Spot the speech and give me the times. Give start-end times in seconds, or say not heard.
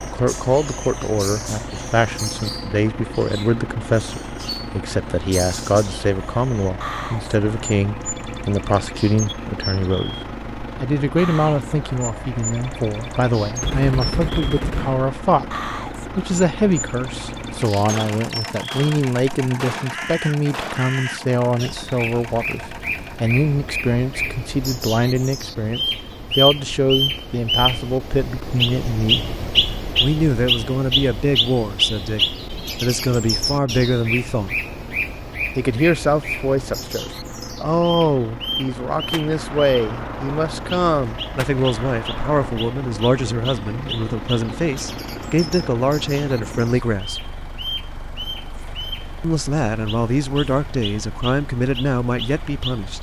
0.1-10.2, 10.8-29.2, 30.0-34.5, 35.5-47.3, 49.2-52.9.